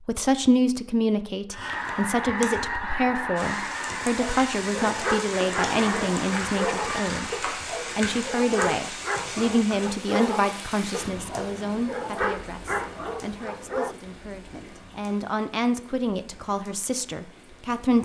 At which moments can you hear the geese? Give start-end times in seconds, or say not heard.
1.5-7.4.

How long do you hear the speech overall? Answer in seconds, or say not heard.
18 s.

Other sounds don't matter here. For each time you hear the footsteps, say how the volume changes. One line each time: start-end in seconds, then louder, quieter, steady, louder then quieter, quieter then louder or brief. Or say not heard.
not heard.